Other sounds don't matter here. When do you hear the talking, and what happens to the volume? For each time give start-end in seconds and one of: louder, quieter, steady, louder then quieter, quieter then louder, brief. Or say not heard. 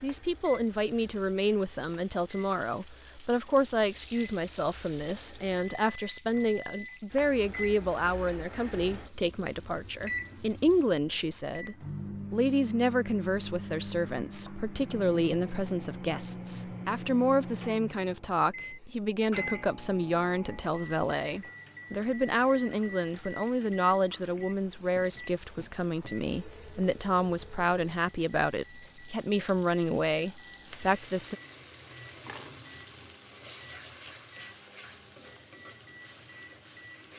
0.0-31.4 steady.